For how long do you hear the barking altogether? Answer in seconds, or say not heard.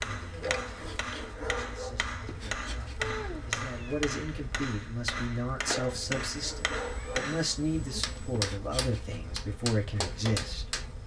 3 s.